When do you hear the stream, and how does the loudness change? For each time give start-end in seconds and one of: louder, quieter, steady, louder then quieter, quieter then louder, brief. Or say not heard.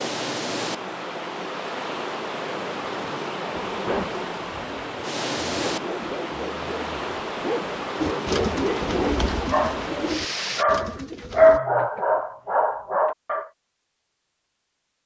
0.0-10.7 steady.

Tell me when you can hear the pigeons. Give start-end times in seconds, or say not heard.
8.0-11.6.